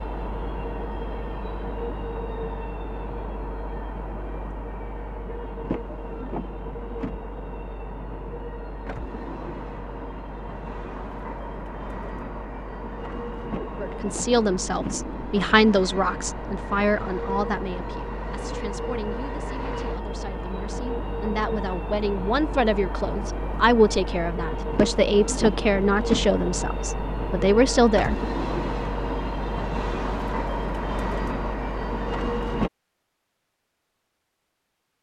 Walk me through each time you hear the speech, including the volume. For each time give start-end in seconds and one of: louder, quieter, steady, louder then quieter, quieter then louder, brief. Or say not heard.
13.8-28.2 quieter then louder.